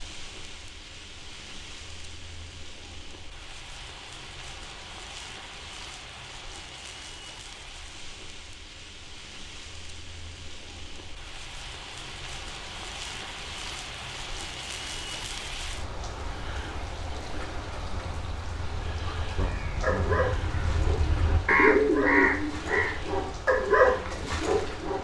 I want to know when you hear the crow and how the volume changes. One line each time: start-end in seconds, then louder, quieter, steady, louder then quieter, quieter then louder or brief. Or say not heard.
17.7-22.9 louder.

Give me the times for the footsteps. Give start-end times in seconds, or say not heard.
not heard.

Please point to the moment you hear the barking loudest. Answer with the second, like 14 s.
24 s.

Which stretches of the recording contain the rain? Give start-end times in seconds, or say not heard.
0.0-24.9.